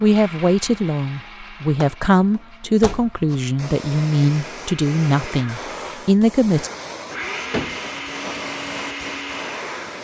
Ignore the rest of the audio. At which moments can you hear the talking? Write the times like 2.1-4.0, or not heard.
0.0-6.7.